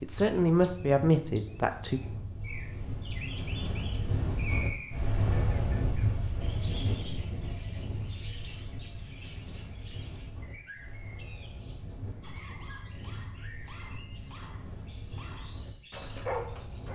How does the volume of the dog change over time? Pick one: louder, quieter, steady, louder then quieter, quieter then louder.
louder.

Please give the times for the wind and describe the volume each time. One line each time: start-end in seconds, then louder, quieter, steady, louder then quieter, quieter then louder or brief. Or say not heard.
0.0-16.8 louder then quieter.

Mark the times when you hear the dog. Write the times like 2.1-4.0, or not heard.
12.2-16.8.